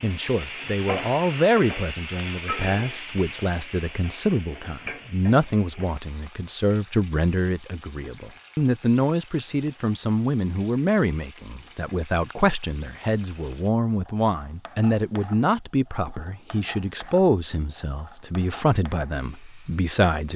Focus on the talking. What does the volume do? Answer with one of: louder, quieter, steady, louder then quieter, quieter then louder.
steady.